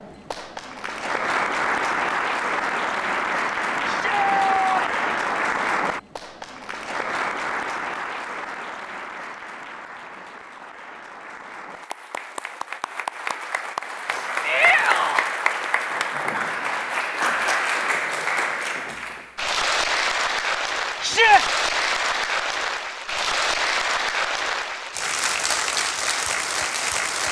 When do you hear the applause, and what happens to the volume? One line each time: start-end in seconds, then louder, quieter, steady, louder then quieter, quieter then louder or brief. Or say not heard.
0.0-27.2 quieter then louder.